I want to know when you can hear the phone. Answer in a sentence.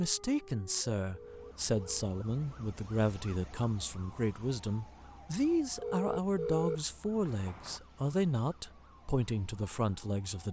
The phone can be heard from 1.1 to 2.0 s and from 5.8 to 7.8 s.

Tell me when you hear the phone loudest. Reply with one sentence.
The volume of the phone peaks at 7 seconds.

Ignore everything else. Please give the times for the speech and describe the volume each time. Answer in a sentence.
The speech can be heard from 0.0 to 10.4 s, at a steady volume.